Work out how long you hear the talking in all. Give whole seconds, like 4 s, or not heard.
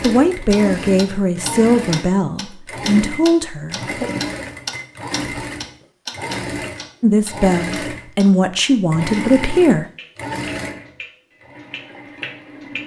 7 s.